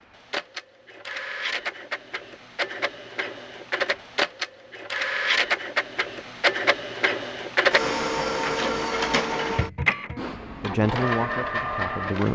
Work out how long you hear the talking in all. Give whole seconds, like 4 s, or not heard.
2 s.